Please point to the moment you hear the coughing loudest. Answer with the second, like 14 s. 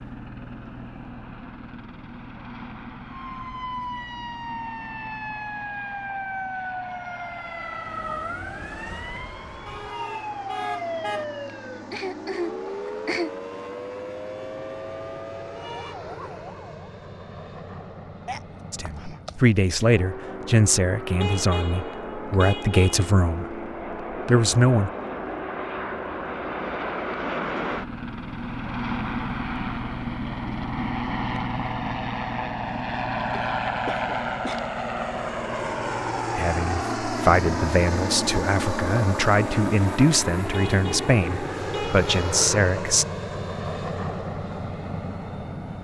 13 s.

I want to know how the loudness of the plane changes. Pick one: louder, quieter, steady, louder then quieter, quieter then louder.
louder.